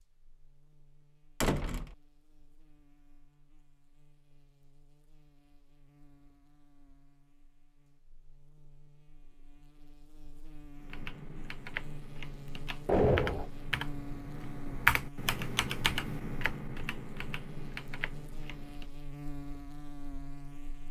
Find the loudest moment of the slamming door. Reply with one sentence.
The loudest moment of the slamming door is at 13 seconds.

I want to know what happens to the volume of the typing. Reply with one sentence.
The volume of the typing goes up, then down.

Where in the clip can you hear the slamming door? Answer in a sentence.
The slamming door can be heard from 1.4 to 1.9 s and from 12.8 to 13.5 s.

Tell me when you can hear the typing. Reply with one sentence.
The typing can be heard from 10.8 to 18.9 s.